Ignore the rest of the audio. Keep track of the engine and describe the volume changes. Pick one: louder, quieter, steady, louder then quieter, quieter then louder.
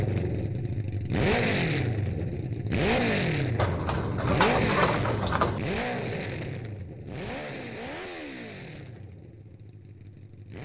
quieter.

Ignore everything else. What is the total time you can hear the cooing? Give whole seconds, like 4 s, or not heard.
2 s.